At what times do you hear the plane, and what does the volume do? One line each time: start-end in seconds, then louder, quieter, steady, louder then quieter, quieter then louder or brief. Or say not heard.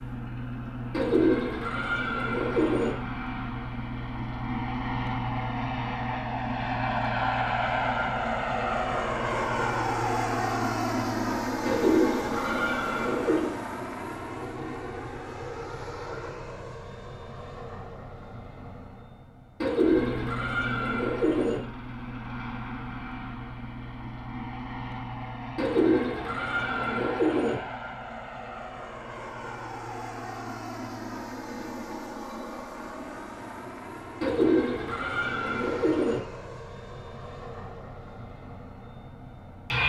0.0-39.8 quieter.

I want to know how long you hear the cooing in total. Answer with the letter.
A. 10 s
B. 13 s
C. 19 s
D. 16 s
A.